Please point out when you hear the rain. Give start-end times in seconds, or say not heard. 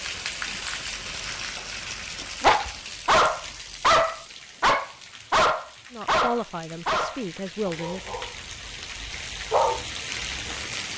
0.0-10.9.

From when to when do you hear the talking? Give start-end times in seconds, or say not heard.
5.9-8.2.